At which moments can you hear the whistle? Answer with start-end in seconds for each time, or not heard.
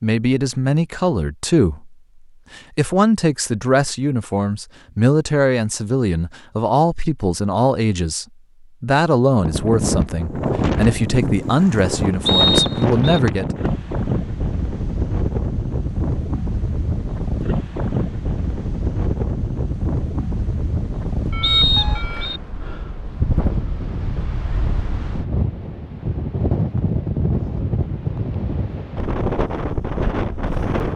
12.2-12.9, 21.4-22.4.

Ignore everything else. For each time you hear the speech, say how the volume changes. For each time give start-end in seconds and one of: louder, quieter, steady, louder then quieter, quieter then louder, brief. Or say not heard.
0.0-1.9 brief
2.5-13.4 steady.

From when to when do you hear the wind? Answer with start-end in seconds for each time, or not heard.
9.3-30.9.